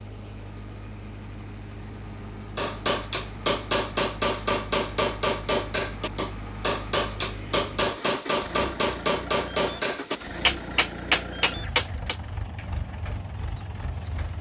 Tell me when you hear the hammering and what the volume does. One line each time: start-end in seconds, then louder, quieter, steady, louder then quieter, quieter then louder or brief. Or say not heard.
2.5-12.2 steady.